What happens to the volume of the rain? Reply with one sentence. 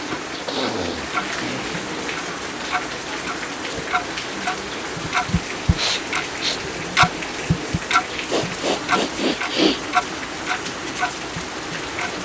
The loudness of the rain stays about the same.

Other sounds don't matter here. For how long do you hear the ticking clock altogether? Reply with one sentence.
The ticking clock can be heard for 11 seconds in total.